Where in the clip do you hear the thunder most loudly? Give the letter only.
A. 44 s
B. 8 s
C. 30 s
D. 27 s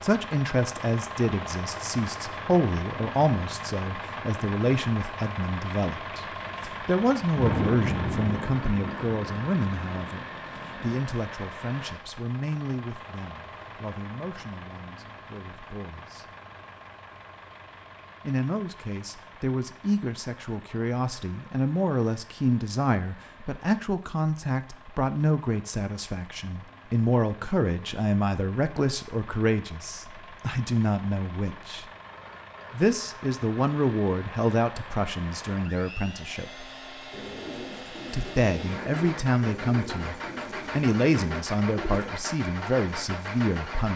B.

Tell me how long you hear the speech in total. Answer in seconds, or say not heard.
40 s.